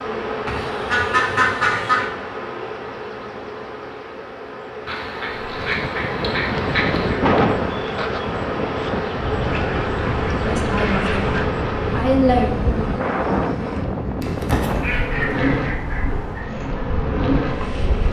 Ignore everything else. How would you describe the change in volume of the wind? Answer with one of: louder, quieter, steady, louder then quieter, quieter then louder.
quieter.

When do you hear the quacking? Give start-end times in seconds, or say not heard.
0.5-2.0, 4.8-7.2, 9.4-11.4, 14.2-16.4.